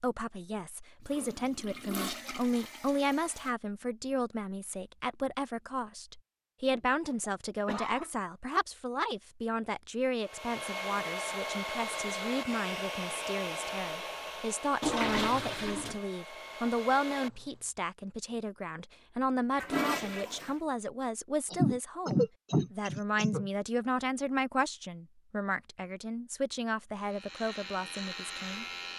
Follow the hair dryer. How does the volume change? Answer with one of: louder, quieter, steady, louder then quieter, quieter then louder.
quieter.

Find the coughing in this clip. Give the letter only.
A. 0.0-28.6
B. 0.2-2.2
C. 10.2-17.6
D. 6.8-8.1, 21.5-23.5
D.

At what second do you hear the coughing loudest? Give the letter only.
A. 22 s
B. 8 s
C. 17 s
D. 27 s
A.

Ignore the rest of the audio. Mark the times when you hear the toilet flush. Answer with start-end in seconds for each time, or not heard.
1.1-3.5, 14.8-16.0, 19.5-20.6.